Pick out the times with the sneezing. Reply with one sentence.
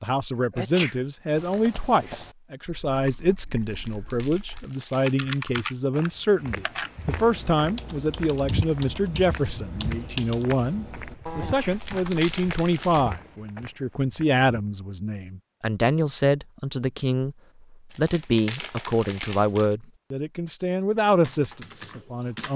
The sneezing can be heard from 0.5 to 0.9 s and from 11.3 to 11.8 s.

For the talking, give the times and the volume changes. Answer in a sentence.
The talking can be heard from 0.0 to 22.5 s, at a steady volume.